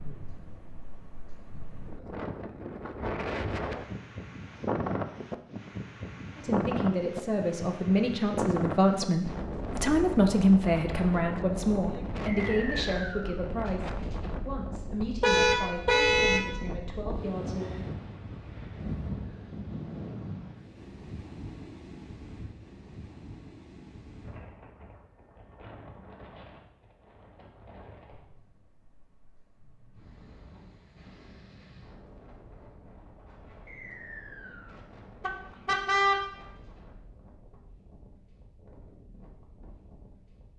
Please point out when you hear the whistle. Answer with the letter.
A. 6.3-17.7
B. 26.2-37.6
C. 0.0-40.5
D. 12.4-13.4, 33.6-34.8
D.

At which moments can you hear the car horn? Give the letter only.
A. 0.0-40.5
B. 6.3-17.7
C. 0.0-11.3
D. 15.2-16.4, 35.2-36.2
D.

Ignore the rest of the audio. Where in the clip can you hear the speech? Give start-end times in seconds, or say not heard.
6.3-17.7.